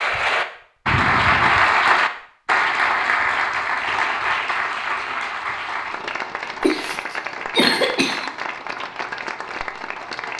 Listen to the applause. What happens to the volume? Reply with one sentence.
The volume of the applause goes down.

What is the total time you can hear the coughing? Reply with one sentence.
The coughing can be heard for 2 seconds in total.